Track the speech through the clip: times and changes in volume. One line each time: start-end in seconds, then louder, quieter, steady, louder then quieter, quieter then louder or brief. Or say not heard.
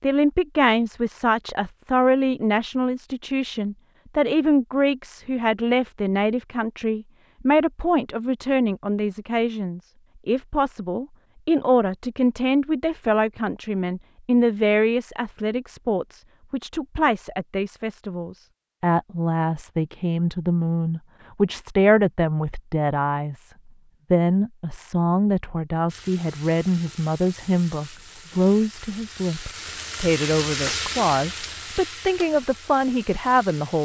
0.0-23.5 steady
24.1-33.7 steady.